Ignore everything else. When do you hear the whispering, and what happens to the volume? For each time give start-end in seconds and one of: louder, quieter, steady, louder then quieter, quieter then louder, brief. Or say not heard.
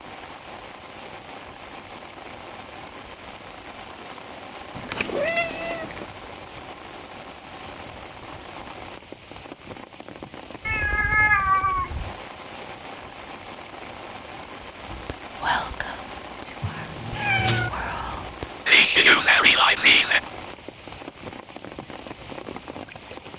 14.9-20.2 quieter then louder.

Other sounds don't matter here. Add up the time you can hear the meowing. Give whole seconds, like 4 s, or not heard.
4 s.